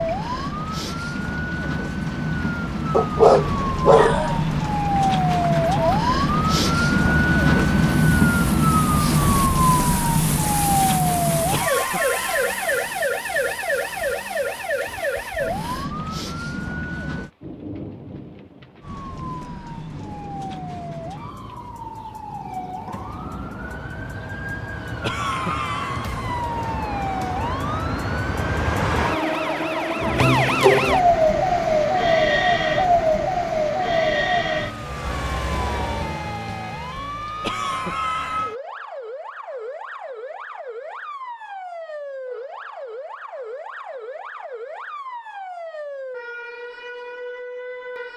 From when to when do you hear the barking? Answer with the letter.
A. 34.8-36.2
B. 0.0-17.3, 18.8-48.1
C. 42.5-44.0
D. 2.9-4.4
D.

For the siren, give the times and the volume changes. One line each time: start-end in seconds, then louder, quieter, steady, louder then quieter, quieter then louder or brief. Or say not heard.
0.0-17.3 louder then quieter
18.8-48.1 louder then quieter.